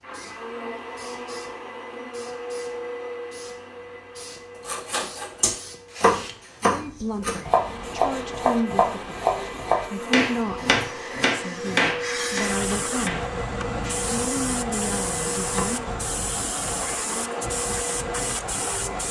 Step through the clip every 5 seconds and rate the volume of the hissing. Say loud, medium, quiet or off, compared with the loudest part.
quiet, quiet, loud, loud.